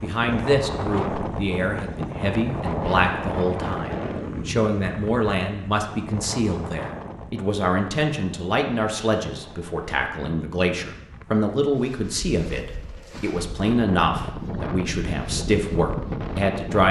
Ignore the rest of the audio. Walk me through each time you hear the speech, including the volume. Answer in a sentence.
You can hear the speech from 0.0 to 16.8 s, at a steady volume.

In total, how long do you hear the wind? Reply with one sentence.
The wind can be heard for 17 seconds in total.